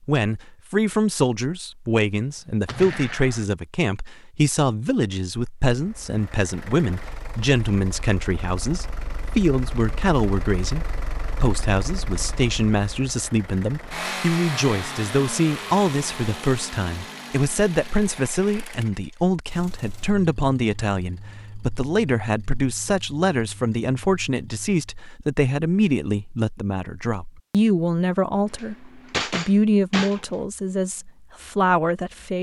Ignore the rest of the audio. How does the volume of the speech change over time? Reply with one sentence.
The loudness of the speech stays about the same.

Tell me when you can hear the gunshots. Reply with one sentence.
The gunshots can be heard from 2.6 to 3.5 s and from 28.6 to 30.4 s.